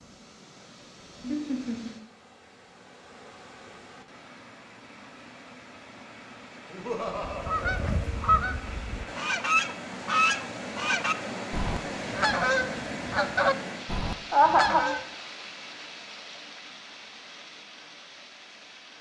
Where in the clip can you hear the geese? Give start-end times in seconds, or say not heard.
7.2-15.0.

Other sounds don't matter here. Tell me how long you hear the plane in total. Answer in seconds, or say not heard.
not heard.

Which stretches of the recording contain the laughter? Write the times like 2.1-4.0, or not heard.
1.2-1.9, 6.7-8.1, 14.3-15.0.